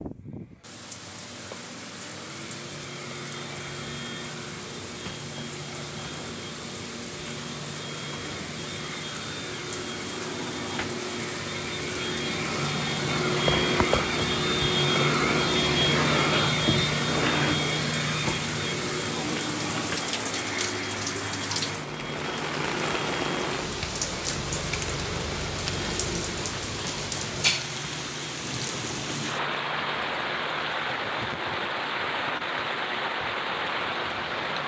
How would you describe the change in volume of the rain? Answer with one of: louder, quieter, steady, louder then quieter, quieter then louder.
louder.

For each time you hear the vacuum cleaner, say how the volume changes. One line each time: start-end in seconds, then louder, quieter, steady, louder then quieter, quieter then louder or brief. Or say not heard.
0.0-34.6 louder then quieter.